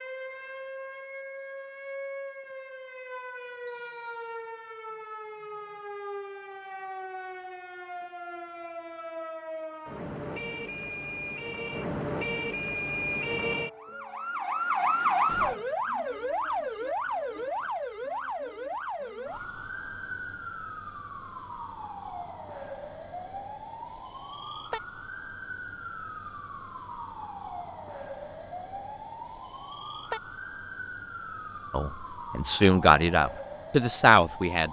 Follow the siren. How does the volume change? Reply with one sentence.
The loudness of the siren goes up, then down.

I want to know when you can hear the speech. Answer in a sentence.
The speech can be heard from 31.7 to 34.6 s.